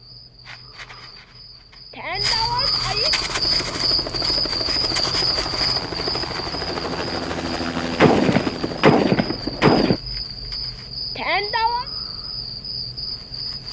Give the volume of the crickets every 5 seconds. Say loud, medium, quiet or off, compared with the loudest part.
loud, loud, medium.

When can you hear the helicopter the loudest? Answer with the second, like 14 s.
8 s.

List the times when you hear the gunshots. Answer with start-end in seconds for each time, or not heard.
8.0-10.0.